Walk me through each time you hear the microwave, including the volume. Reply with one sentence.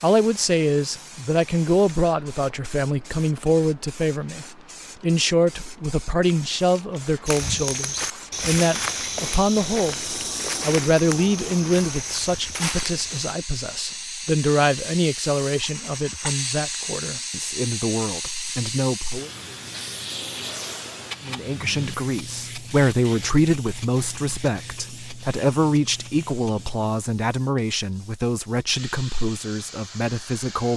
The microwave can't be heard in this clip.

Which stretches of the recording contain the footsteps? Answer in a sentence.
The footsteps can be heard from 7.2 to 13.3 s.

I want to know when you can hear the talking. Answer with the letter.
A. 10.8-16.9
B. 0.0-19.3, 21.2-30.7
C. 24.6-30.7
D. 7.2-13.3
B.